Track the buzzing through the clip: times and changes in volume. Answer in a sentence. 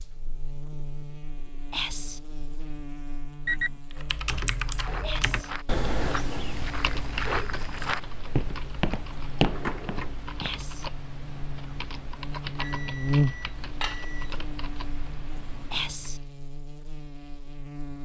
You can hear the buzzing from 0.0 to 18.0 s, getting louder then quieter.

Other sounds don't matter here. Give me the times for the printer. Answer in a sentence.
The printer can't be heard in this clip.